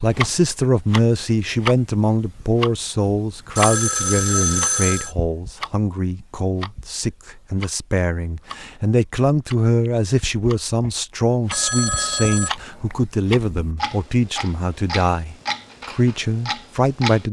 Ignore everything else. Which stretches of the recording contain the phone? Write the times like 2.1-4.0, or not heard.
3.5-5.2, 11.5-13.0.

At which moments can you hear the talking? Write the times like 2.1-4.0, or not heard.
0.0-17.2.